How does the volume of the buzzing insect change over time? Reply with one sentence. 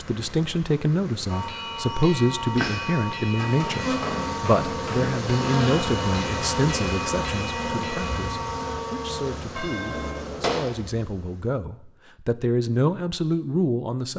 The volume of the buzzing insect goes up, then down.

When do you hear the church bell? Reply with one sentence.
The church bell can be heard from 1.2 to 10.2 s.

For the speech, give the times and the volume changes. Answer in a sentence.
The speech can be heard from 0.0 to 14.1 s, getting quieter then louder.